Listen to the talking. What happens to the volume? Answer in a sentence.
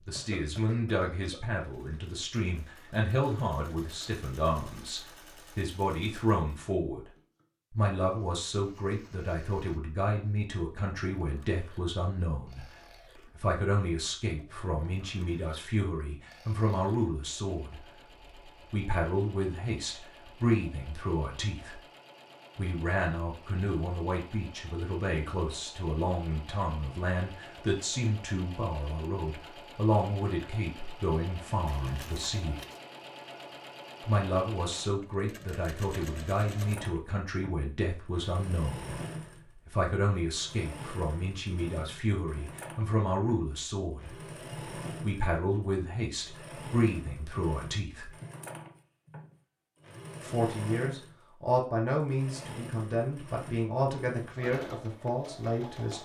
The volume of the talking stays about the same.